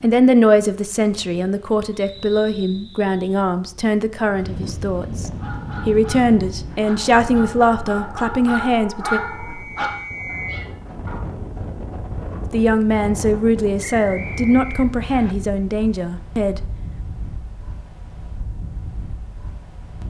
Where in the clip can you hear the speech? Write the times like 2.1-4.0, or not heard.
0.0-9.2, 12.5-16.6.